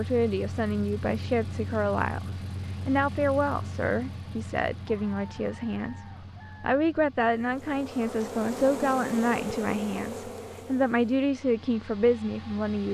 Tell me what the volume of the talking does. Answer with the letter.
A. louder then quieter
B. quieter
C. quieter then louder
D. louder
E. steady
E.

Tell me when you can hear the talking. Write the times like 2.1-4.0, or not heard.
0.0-6.0, 6.6-12.8.